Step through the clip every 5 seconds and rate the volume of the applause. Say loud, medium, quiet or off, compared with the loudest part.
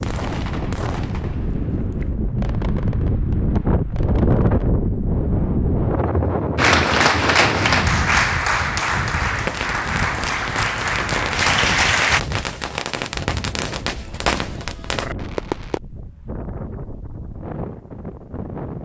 off, loud, loud, off.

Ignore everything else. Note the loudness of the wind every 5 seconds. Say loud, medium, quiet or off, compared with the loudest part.
loud, loud, medium, medium.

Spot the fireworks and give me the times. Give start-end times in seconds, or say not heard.
0.0-4.7, 9.3-15.8.